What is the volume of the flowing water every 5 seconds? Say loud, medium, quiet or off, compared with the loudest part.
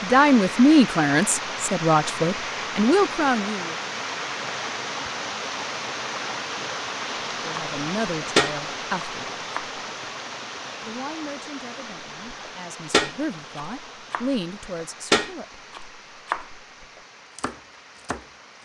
loud, loud, medium, quiet.